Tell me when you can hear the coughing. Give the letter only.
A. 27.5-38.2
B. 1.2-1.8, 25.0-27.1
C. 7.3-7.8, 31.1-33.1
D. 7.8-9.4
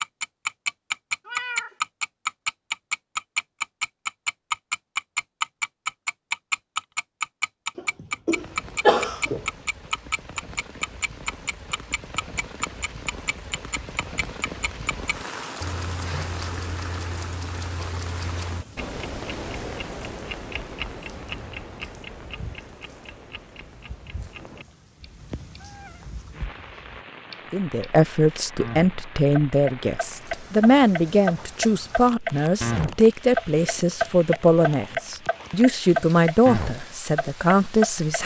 D.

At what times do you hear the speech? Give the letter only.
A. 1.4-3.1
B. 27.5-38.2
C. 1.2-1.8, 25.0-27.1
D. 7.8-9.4
B.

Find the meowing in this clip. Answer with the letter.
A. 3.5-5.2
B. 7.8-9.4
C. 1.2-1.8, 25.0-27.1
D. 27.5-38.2
C.